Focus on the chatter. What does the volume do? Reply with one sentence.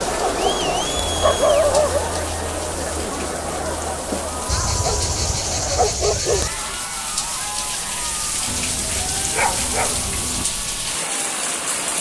The volume of the chatter goes down.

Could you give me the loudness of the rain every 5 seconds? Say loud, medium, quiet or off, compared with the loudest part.
medium, loud, loud.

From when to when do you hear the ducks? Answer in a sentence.
The ducks can't be heard in this clip.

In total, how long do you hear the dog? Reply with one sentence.
The dog can be heard for 6 seconds in total.